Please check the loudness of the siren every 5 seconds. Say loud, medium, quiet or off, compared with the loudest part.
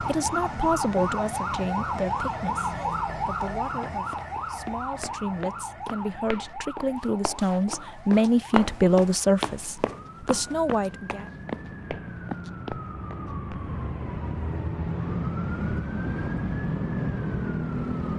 loud, medium, medium, loud.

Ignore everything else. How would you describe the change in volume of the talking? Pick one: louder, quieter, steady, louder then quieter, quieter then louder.
quieter then louder.